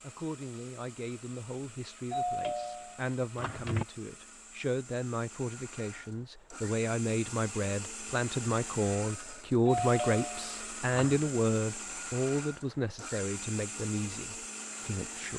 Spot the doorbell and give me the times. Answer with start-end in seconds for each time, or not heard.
2.1-3.9, 9.7-11.3.